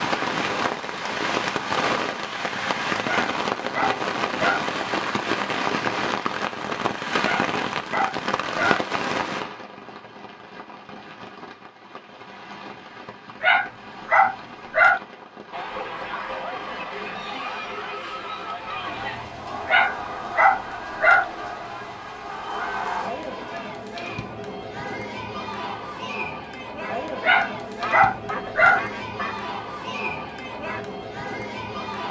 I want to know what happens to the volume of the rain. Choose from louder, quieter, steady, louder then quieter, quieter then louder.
quieter.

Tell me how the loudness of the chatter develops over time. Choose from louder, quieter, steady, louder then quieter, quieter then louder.
steady.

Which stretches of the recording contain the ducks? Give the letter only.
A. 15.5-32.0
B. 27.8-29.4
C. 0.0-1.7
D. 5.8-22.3
B.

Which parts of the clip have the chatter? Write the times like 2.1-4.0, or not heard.
15.5-32.0.